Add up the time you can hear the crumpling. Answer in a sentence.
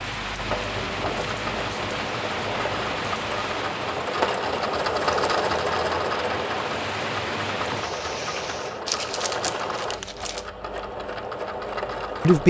The crumpling can be heard for 2 seconds in total.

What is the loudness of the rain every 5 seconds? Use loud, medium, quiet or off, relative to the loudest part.
loud, loud, off.